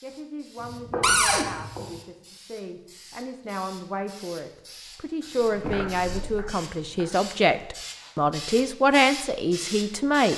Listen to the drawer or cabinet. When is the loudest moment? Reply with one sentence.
The volume of the drawer or cabinet peaks at 1 second.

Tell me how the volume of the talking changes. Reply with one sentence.
The loudness of the talking goes up.